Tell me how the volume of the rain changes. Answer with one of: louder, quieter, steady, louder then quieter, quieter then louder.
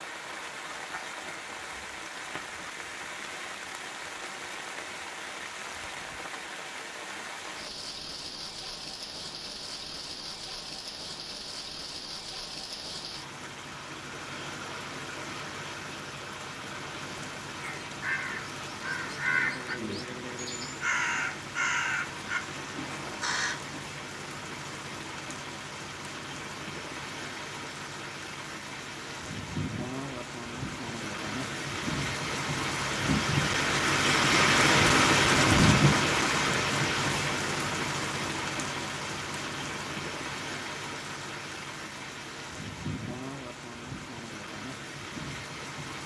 louder then quieter.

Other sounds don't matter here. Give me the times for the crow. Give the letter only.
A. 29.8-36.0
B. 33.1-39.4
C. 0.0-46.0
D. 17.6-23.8
D.